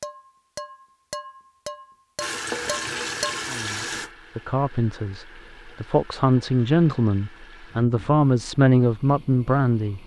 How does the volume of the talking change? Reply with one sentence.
The volume of the talking goes up.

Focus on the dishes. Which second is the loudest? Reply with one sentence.
The volume of the dishes peaks at 3 seconds.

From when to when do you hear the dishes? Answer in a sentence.
The dishes can be heard from 0.0 to 3.5 s.